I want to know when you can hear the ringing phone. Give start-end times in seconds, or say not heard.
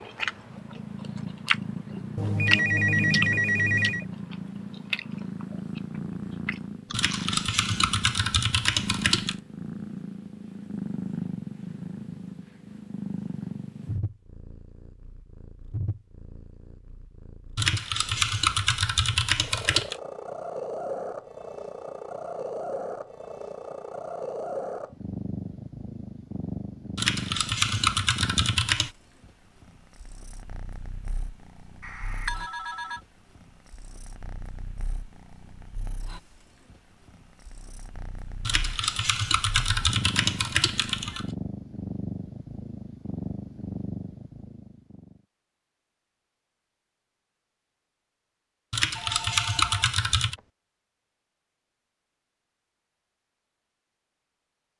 2.1-4.0, 31.8-33.0, 49.0-50.5.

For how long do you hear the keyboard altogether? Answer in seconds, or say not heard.
11 s.